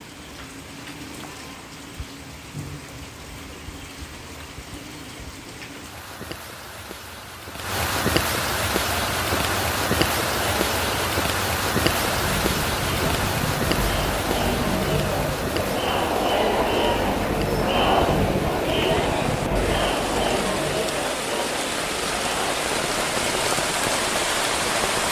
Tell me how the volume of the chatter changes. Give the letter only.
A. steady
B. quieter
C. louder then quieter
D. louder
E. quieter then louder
C.